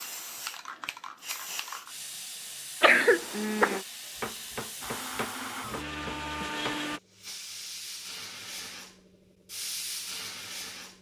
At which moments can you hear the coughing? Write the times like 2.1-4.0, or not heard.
2.8-3.8.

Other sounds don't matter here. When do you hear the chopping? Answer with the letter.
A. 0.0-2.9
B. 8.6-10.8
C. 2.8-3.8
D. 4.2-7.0
D.